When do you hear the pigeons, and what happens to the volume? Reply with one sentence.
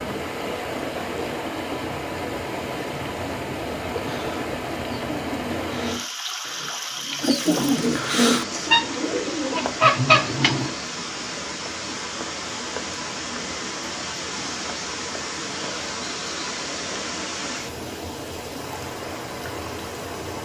You can hear the pigeons from 4.0 to 10.7 s, getting louder.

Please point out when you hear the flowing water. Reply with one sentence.
The flowing water can be heard from 0.0 to 20.3 s.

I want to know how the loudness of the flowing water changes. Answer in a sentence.
The volume of the flowing water stays about the same.